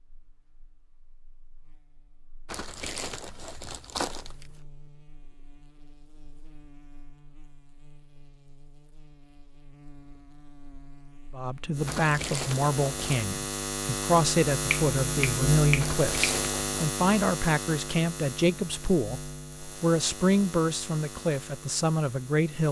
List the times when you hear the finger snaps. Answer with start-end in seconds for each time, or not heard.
14.7-16.4.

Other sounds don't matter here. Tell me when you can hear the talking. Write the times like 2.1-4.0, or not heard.
11.3-22.6.